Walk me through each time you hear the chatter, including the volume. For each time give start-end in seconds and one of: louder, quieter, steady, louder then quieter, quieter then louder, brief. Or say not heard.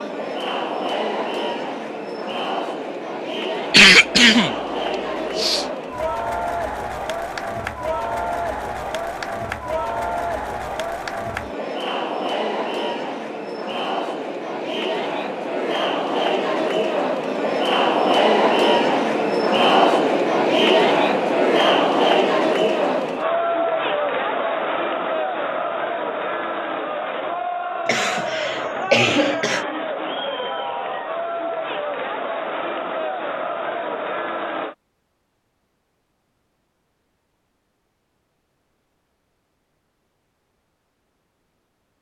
0.0-34.8 louder then quieter.